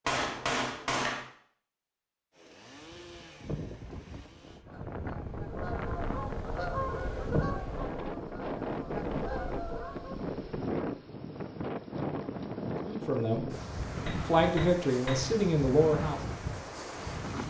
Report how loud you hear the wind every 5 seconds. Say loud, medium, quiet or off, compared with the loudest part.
medium, loud, loud, loud.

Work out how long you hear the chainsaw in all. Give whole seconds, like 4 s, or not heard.
2 s.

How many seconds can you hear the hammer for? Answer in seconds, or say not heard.
3 s.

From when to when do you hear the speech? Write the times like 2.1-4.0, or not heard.
12.8-13.4, 14.2-16.2.